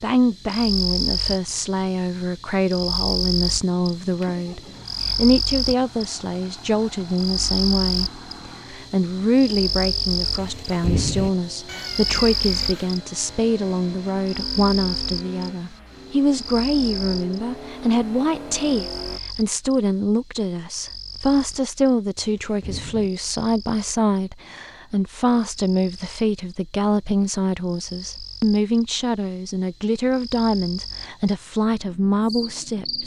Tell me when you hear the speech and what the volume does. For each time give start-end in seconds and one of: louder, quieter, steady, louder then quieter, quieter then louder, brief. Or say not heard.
0.0-33.0 steady.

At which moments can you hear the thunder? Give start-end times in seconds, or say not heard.
10.3-11.3, 22.1-23.1.